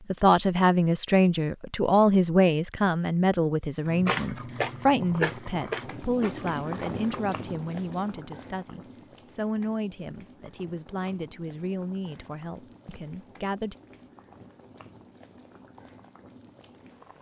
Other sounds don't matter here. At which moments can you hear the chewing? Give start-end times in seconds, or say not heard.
3.9-7.3.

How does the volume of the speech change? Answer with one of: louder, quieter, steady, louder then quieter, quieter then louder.
quieter.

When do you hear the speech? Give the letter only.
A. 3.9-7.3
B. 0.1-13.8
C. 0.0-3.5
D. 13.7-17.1
B.